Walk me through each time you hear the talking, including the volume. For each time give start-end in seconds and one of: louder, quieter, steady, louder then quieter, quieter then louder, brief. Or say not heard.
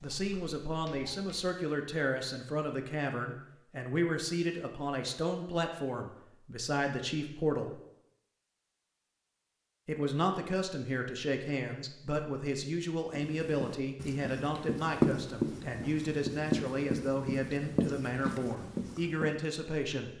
0.0-7.8 steady
9.8-20.1 steady.